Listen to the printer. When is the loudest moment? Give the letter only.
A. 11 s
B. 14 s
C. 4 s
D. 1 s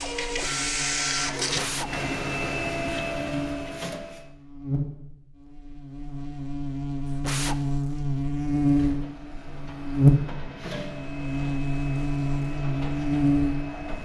D.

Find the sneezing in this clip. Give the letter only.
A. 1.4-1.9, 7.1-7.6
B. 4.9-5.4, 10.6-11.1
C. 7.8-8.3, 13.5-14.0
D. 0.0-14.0
A.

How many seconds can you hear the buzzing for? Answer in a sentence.
You can hear the buzzing for 14 seconds altogether.